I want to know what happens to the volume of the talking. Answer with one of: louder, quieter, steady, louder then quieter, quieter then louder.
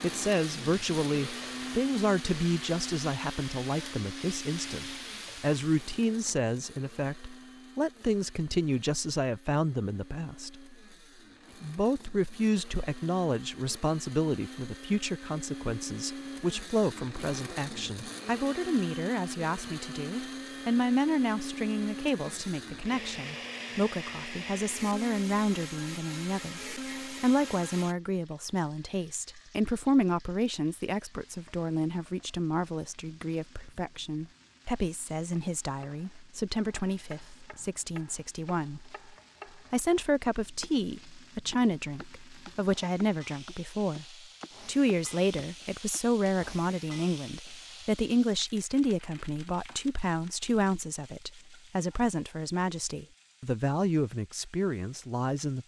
steady.